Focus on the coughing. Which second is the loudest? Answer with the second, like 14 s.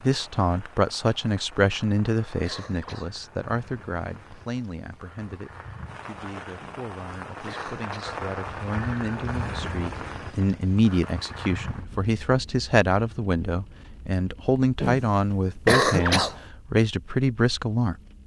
16 s.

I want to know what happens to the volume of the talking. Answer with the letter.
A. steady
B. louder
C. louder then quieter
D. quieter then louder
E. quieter
D.